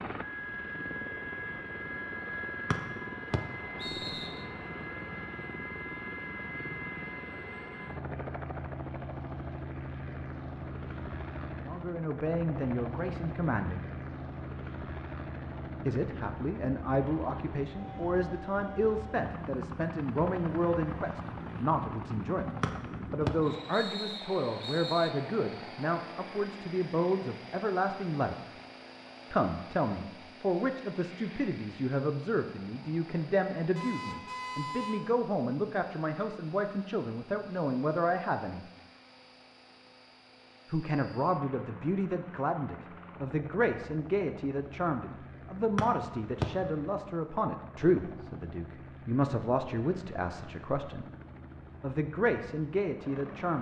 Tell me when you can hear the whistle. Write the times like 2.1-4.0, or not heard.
2.7-4.5, 22.6-25.1, 45.8-46.5.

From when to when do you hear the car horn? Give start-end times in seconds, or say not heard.
33.8-35.0.